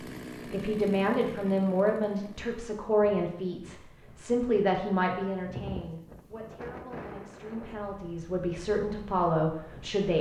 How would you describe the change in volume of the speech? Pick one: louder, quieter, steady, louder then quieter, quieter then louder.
quieter then louder.